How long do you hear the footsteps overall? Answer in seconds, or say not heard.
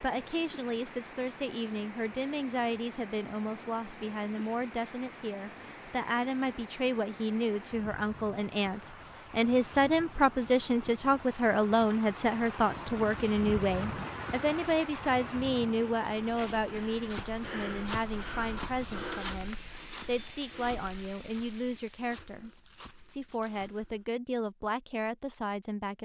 8 s.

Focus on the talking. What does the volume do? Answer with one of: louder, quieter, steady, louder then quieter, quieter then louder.
louder then quieter.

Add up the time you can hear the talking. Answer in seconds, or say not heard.
26 s.